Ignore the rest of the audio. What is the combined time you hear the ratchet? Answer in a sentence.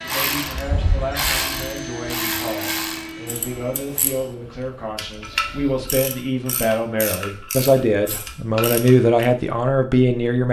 The ratchet can be heard for 9 seconds in total.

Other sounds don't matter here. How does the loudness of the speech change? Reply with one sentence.
The volume of the speech goes up.